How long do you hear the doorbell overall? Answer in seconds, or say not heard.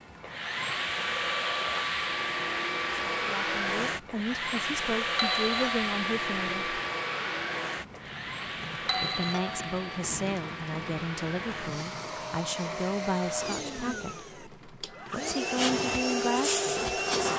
2 s.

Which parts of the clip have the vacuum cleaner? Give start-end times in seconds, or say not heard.
0.0-17.3.